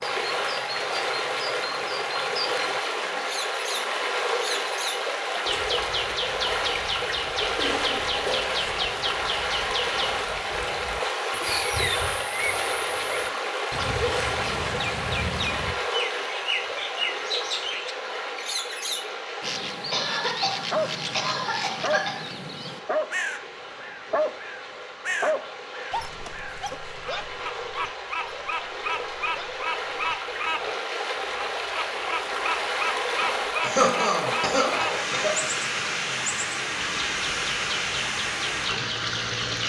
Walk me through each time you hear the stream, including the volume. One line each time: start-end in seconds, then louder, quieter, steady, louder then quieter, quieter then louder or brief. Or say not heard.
0.0-39.6 quieter then louder.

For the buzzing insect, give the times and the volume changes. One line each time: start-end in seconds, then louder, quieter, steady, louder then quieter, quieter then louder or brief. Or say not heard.
not heard.